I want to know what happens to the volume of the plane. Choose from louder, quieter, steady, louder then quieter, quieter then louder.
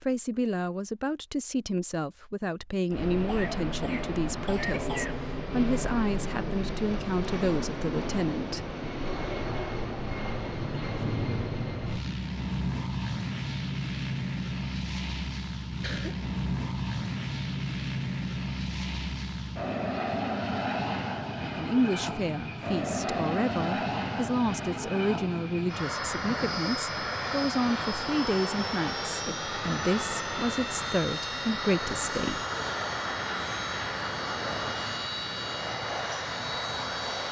steady.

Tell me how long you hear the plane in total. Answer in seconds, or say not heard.
34 s.